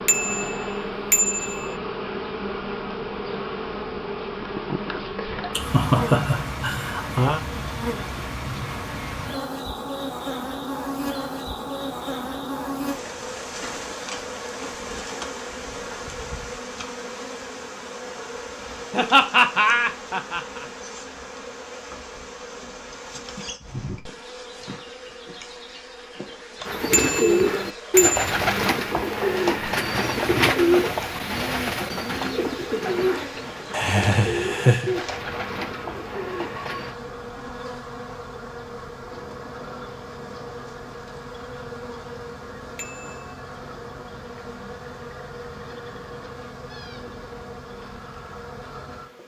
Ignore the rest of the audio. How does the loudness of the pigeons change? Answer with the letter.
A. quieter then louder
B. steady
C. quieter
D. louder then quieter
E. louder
C.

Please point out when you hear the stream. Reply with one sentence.
You can't hear the stream here.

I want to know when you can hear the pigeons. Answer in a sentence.
You can hear the pigeons from 26.6 to 37.0 s.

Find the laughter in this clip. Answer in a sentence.
You can hear the laughter from 5.5 to 7.4 s, from 18.9 to 20.6 s and from 33.7 to 35.0 s.